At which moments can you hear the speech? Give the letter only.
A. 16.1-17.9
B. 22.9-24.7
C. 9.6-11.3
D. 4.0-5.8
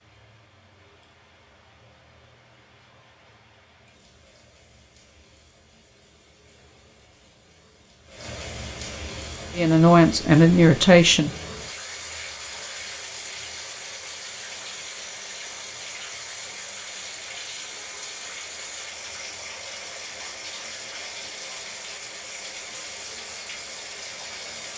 C.